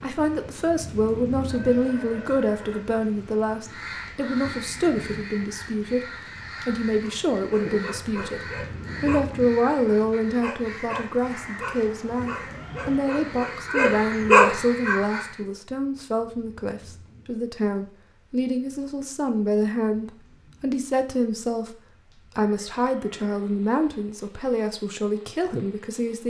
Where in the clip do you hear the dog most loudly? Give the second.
14 s.